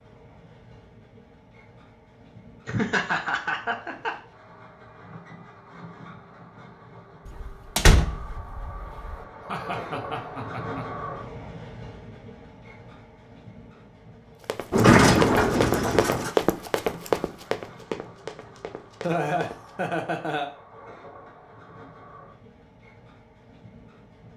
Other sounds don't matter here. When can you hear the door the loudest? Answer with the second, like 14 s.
15 s.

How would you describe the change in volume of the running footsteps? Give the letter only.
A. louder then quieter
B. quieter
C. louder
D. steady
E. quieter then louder
B.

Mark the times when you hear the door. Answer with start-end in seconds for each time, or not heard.
7.2-9.2, 14.7-16.3.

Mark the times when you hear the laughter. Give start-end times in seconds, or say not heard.
2.6-4.1, 9.4-10.8, 19.0-20.5.